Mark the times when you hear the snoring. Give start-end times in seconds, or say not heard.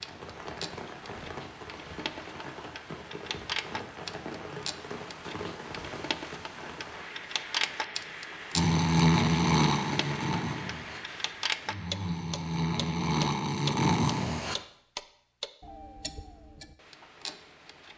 8.6-14.6.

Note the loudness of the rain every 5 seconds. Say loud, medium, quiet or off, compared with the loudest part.
loud, loud, loud, off.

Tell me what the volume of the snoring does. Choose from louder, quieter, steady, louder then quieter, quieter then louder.
quieter then louder.